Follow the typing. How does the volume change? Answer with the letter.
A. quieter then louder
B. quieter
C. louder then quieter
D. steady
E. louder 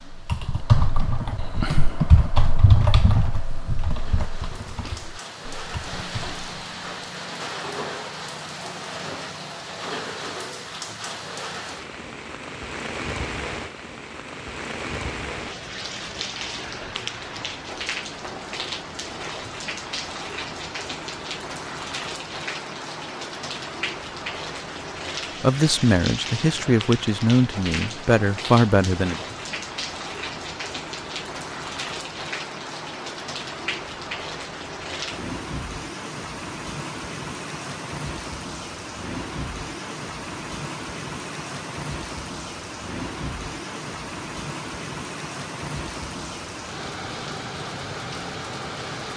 B.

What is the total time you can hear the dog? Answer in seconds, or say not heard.
not heard.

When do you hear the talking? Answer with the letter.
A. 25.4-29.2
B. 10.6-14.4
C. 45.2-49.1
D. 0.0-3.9
A.